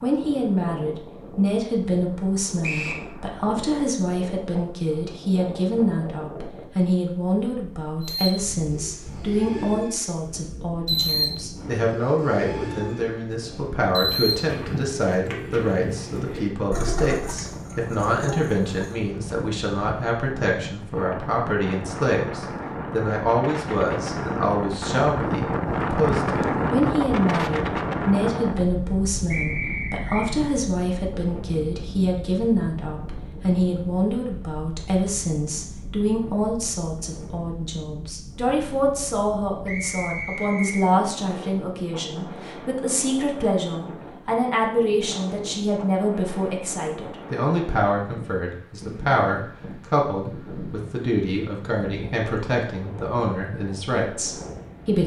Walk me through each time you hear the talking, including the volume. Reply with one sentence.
You can hear the talking from 0.0 to 55.0 s, at a steady volume.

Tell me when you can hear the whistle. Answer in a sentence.
You can hear the whistle from 2.6 to 3.0 s, from 29.3 to 30.3 s and from 39.6 to 40.9 s.